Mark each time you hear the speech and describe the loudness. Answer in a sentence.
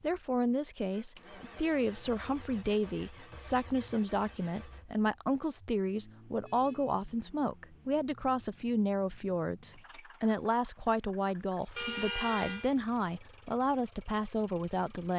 You can hear the speech from 0.0 to 15.1 s, at a steady volume.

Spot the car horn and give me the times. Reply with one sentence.
You can hear the car horn from 0.3 to 1.1 s, from 6.3 to 7.0 s and from 11.8 to 12.7 s.